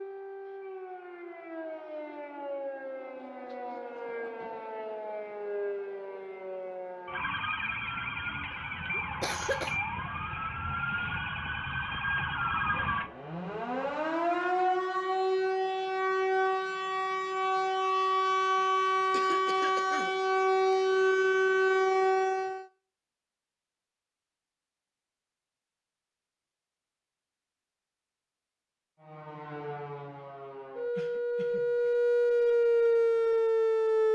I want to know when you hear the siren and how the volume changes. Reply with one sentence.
The siren can be heard from 0.0 to 22.6 s, getting louder; and from 29.0 to 34.1 s, getting louder.